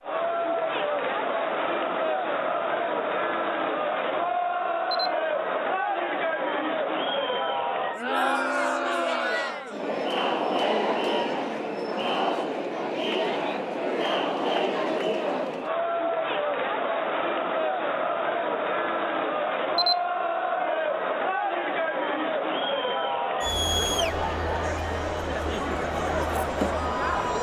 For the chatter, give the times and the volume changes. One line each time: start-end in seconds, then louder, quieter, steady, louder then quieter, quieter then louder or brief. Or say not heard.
0.0-27.3 steady.